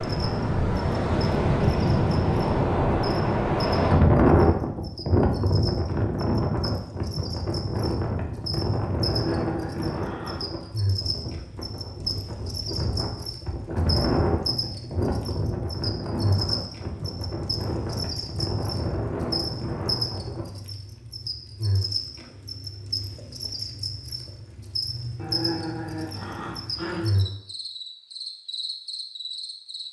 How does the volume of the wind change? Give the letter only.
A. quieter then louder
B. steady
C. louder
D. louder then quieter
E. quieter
E.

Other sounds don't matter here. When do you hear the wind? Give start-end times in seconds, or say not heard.
0.0-20.4.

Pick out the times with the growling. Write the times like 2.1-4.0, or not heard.
9.0-10.7, 25.1-27.1.